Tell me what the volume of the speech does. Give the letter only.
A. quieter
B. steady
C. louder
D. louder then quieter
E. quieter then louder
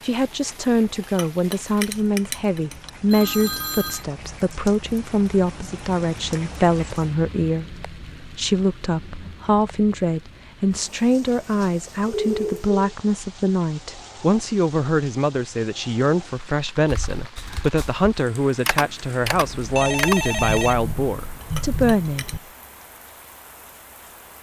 B.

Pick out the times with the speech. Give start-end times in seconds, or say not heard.
0.0-22.2.